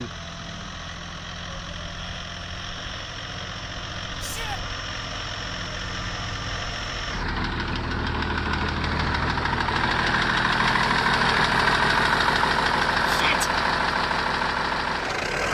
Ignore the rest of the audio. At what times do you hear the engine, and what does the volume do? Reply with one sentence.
You can hear the engine from 0.0 to 15.4 s, getting louder.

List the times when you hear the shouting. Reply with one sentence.
You can hear the shouting from 4.2 to 4.6 s and from 13.1 to 13.5 s.